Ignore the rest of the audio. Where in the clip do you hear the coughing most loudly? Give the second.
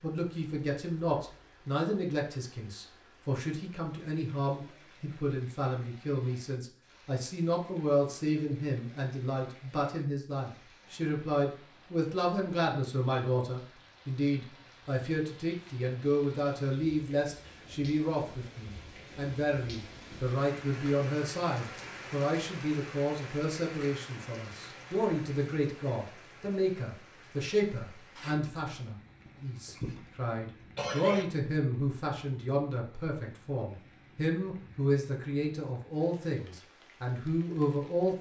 31 s.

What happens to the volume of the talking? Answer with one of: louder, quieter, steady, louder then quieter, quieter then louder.
steady.